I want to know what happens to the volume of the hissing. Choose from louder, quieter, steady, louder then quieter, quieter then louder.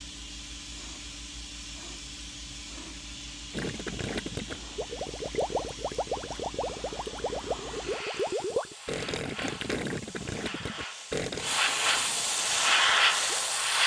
louder.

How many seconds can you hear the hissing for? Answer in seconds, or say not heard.
14 s.